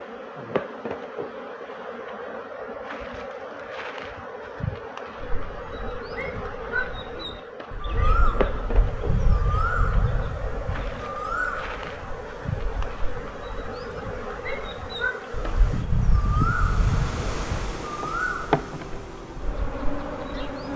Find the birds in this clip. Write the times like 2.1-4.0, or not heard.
5.2-20.7.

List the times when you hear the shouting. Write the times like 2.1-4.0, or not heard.
6.1-8.2, 14.4-15.7.